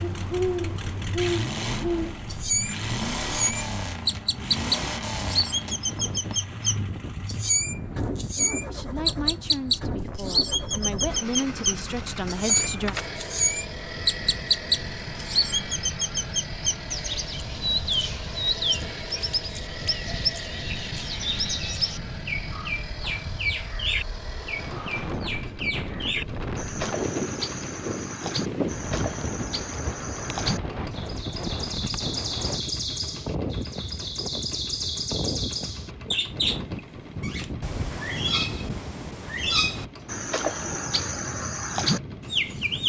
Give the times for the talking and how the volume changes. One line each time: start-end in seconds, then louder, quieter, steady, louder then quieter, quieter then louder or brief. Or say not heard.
8.7-12.9 quieter then louder.